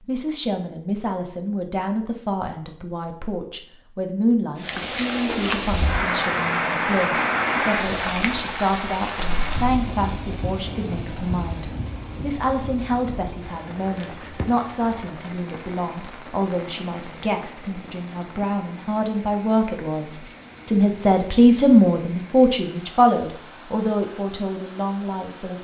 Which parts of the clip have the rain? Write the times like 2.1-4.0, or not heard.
4.5-25.6.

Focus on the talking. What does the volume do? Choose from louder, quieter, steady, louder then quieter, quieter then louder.
louder.